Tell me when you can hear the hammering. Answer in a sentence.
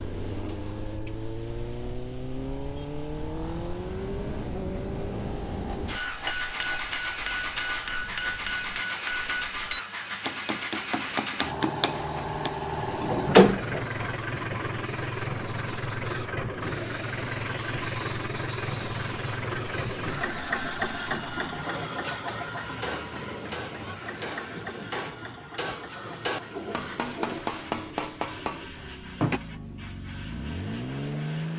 The hammering can be heard from 5.9 to 12.6 s and from 22.6 to 29.4 s.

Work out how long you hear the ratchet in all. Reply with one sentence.
You can't hear the ratchet here.